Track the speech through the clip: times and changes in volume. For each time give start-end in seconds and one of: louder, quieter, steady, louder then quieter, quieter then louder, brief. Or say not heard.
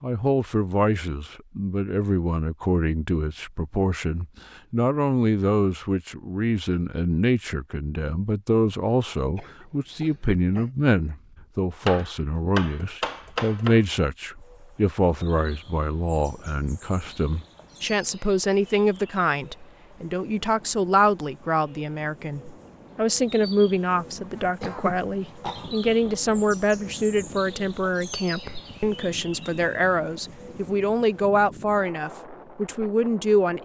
0.0-33.6 steady.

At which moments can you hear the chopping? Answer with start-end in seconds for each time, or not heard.
11.3-13.8.